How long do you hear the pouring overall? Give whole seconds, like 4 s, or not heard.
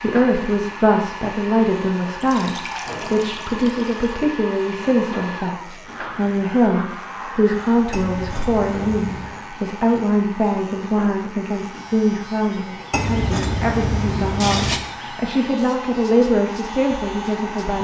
5 s.